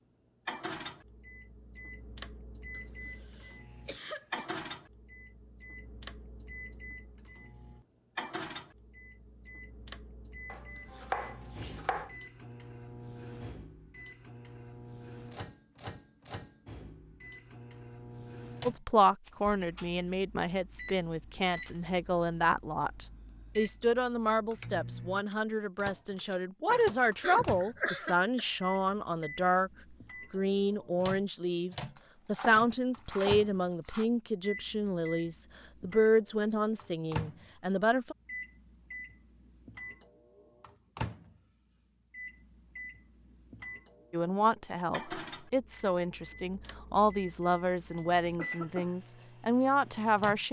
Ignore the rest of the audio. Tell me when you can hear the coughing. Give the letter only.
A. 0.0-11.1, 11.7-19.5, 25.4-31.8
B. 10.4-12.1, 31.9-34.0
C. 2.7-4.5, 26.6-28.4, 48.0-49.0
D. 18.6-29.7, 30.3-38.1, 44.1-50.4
C.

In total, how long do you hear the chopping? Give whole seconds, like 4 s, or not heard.
4 s.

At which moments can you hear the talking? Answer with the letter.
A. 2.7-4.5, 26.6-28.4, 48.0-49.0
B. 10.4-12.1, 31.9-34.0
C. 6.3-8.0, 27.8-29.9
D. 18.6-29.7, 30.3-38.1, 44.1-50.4
D.